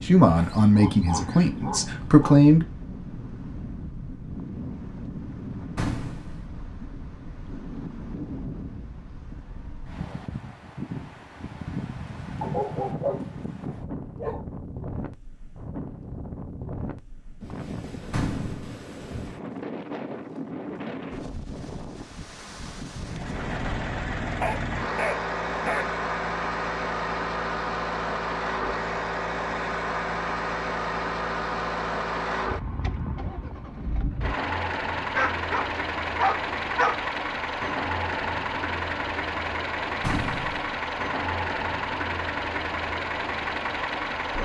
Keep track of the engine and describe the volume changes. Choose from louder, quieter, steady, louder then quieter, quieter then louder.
steady.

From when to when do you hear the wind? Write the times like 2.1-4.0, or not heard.
0.0-23.8.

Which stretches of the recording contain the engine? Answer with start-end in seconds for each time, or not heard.
23.0-44.4.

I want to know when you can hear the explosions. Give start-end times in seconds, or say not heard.
5.8-6.5, 18.1-18.8, 40.0-40.8.